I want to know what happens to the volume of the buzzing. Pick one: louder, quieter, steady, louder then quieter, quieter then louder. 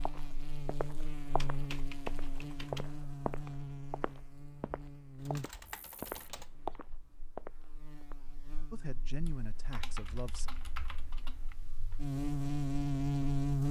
quieter then louder.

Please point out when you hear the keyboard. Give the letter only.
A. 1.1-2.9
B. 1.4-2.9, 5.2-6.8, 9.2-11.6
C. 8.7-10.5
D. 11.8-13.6
B.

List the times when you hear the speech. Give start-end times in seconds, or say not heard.
8.7-10.5.